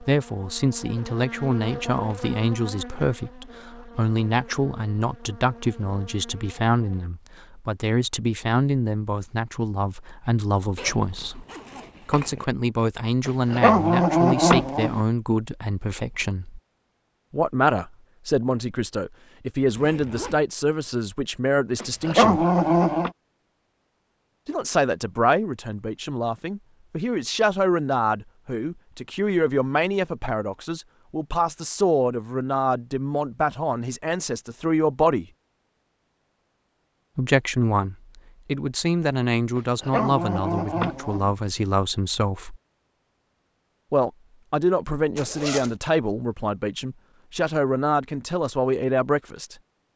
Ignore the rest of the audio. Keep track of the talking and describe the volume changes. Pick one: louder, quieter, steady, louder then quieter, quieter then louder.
steady.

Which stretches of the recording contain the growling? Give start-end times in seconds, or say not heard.
13.2-15.0, 21.8-23.1, 39.5-41.4.